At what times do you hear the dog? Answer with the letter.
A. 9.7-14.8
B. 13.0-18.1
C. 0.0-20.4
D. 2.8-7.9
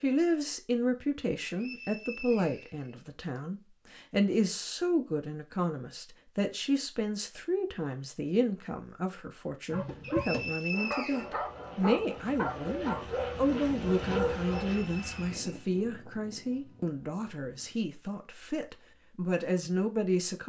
A.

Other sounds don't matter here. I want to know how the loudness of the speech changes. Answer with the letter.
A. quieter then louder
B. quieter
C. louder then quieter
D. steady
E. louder
D.